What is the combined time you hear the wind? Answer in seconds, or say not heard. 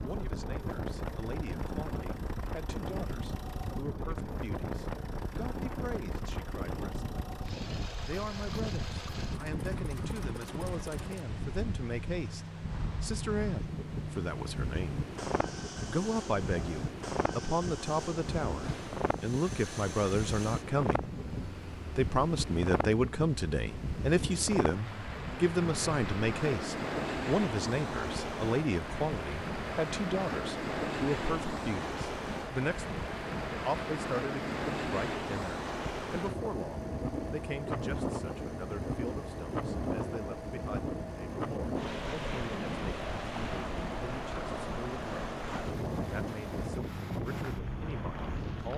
49 s.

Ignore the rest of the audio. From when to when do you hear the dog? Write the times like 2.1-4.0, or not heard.
not heard.